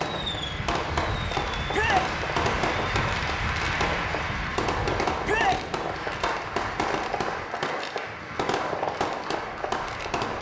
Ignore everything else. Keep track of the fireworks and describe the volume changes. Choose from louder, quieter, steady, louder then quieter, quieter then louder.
steady.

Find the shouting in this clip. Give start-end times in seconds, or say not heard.
1.7-2.1, 5.2-5.7.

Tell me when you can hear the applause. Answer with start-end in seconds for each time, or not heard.
0.1-10.3.